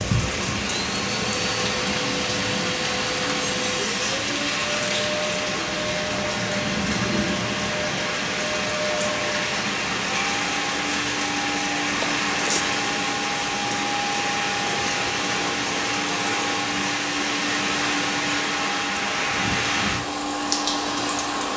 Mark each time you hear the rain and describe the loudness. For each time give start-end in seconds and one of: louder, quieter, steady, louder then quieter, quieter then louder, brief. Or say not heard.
0.0-21.5 steady.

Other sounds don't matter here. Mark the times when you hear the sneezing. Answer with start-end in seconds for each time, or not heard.
12.0-12.7.